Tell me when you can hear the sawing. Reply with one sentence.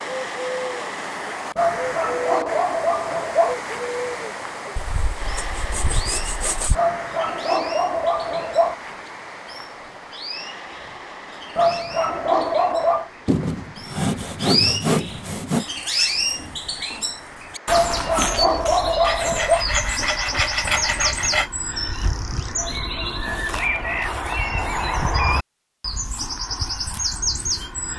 You can hear the sawing from 4.8 to 6.8 s, from 13.2 to 15.7 s and from 19.0 to 21.5 s.